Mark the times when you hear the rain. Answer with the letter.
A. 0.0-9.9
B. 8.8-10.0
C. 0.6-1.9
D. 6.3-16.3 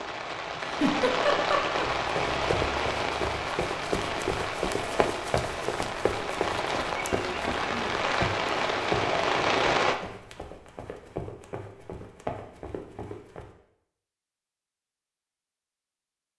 A.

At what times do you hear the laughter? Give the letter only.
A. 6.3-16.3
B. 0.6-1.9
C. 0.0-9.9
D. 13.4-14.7
B.